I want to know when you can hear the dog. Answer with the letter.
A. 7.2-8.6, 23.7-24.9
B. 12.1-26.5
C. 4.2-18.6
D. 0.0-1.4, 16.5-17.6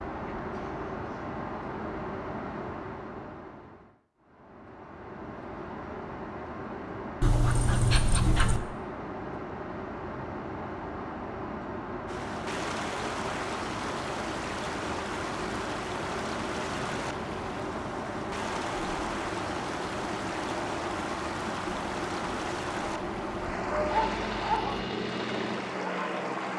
A.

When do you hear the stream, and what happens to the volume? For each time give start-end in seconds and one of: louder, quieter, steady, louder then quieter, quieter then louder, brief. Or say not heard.
12.1-26.5 steady.